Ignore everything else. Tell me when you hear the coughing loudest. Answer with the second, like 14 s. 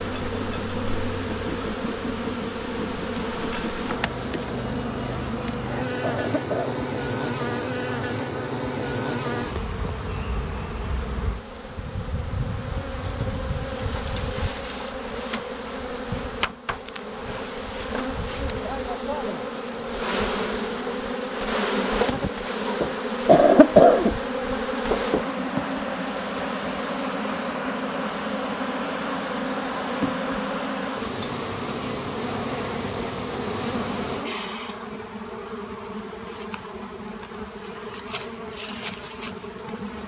24 s.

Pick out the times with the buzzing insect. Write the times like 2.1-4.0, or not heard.
0.0-40.0.